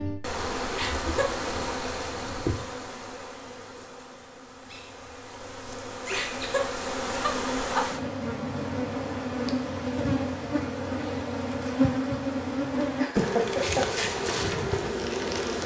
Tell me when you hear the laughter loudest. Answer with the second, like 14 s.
13 s.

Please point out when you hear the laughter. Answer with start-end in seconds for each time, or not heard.
0.7-1.4, 6.1-7.8, 13.0-13.8.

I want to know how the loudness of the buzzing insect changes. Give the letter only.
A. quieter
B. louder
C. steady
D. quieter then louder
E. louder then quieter
D.